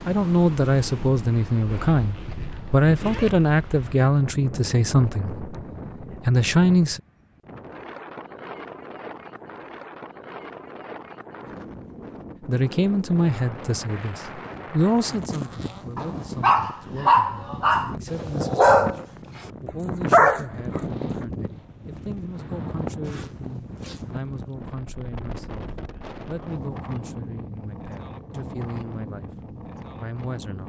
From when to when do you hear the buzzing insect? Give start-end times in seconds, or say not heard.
not heard.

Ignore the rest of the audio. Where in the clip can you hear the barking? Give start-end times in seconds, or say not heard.
15.9-19.1, 19.6-20.8.